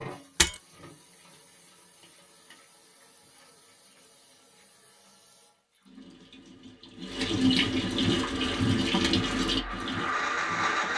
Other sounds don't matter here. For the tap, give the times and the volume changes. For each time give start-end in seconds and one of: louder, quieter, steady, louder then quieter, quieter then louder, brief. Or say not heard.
0.0-10.9 louder.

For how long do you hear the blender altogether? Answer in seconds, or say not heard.
3 s.